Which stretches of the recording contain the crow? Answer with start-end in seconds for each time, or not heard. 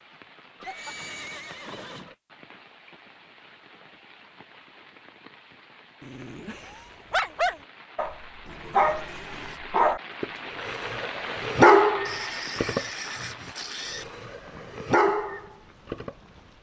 not heard.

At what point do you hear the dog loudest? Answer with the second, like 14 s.
12 s.